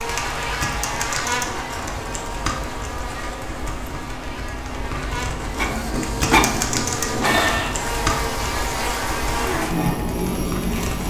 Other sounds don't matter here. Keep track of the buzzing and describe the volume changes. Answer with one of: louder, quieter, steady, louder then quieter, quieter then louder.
quieter then louder.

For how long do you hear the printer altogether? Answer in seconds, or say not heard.
2 s.